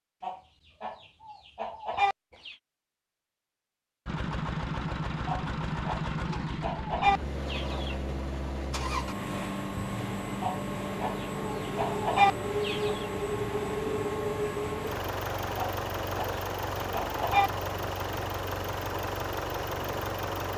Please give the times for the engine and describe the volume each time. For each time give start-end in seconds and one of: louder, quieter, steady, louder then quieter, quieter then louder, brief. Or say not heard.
4.0-20.5 steady.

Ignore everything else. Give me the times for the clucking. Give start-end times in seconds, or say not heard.
0.2-2.5, 5.2-8.0, 10.4-13.1, 15.6-17.5.